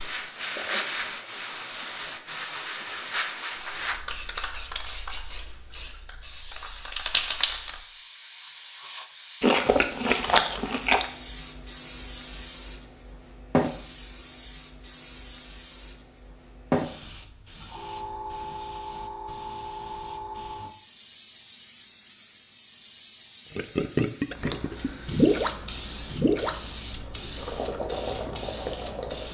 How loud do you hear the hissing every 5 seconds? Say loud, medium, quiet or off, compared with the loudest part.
loud, loud, loud, loud, medium, medium.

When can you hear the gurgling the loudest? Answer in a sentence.
The volume of the gurgling peaks at 25 seconds.